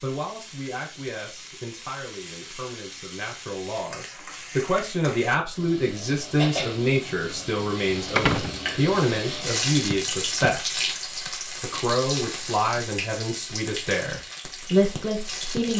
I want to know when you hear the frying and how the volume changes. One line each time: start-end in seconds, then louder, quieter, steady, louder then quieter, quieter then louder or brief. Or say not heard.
0.0-15.7 louder then quieter.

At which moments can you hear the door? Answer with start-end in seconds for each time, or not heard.
8.2-9.0.